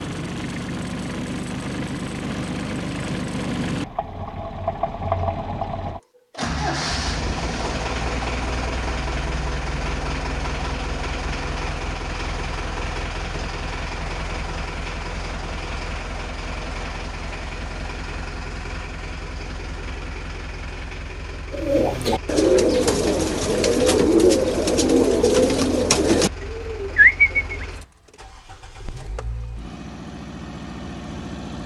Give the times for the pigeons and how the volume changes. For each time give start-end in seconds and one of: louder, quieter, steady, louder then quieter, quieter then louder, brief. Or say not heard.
21.5-27.6 steady.